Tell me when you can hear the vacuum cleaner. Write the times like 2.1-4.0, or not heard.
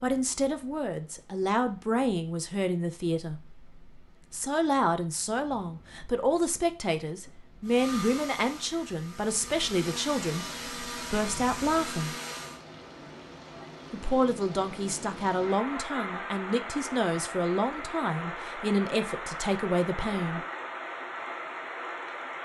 7.6-12.6.